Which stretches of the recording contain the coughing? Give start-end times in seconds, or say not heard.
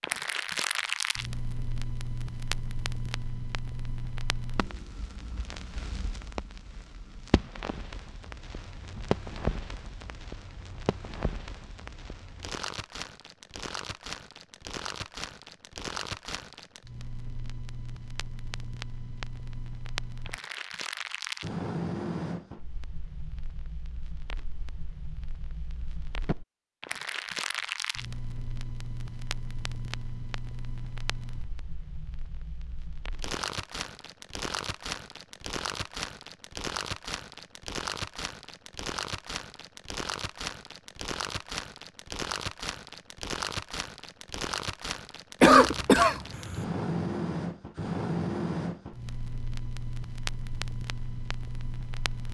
45.4-46.6.